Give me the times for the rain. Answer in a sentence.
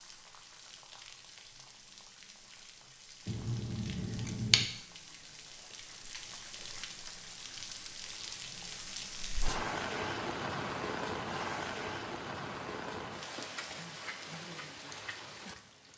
The rain can be heard from 0.0 to 15.9 s.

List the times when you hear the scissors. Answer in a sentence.
You can hear the scissors from 3.2 to 4.7 s.